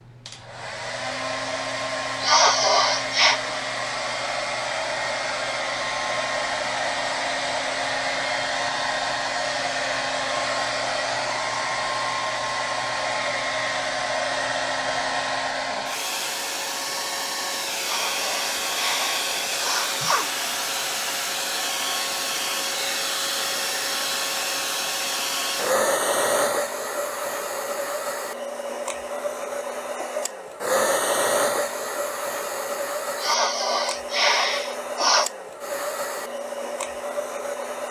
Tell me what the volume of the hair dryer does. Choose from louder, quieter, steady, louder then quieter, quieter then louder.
steady.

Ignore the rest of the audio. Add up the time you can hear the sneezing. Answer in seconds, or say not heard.
6 s.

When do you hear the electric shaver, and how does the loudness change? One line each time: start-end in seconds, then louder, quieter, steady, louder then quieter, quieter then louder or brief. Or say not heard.
not heard.